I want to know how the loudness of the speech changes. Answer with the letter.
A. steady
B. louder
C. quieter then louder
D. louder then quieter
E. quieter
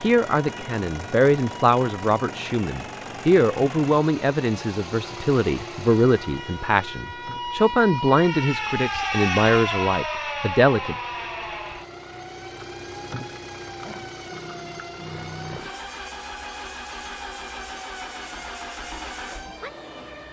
A.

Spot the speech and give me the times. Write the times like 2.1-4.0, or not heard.
0.0-10.9.